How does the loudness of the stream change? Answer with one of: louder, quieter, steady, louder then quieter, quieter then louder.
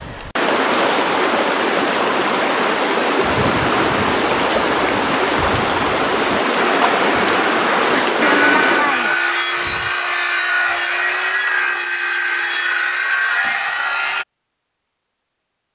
steady.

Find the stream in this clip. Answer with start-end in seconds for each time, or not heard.
0.0-9.0.